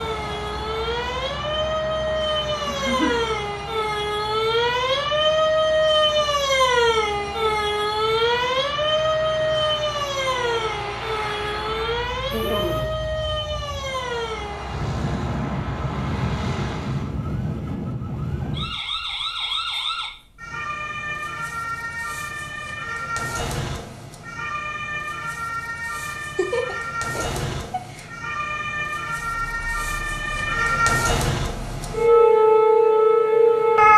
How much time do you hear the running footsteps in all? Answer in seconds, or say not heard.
not heard.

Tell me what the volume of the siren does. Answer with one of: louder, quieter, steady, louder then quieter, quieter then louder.
quieter then louder.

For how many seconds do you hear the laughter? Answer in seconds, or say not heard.
3 s.